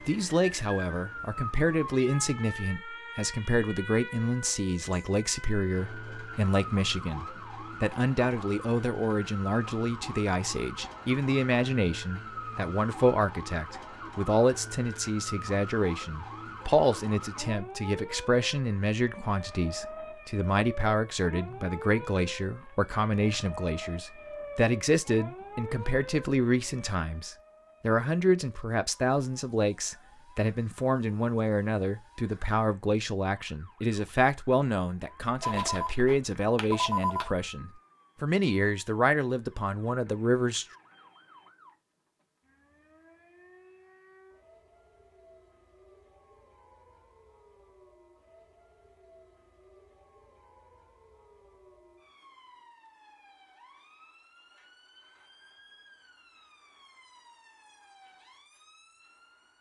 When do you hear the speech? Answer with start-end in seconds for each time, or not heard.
0.1-40.6.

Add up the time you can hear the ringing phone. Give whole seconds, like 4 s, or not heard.
2 s.